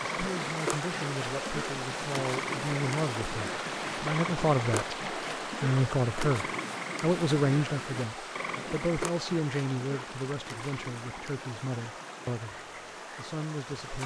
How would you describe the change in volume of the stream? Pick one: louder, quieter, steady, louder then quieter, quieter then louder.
quieter.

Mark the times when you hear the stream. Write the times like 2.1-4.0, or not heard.
0.0-14.0.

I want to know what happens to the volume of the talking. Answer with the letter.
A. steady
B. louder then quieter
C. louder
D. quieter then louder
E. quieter
B.